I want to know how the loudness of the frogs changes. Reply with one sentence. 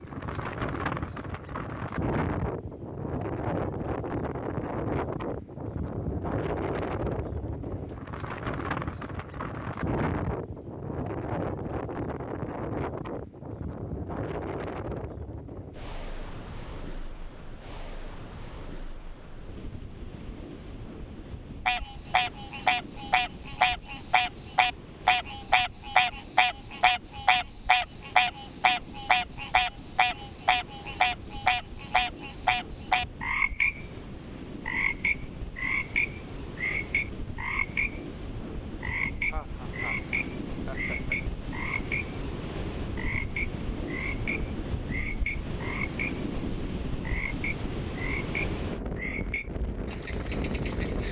The loudness of the frogs goes down.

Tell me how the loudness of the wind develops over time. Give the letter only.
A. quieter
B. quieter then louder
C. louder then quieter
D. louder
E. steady
B.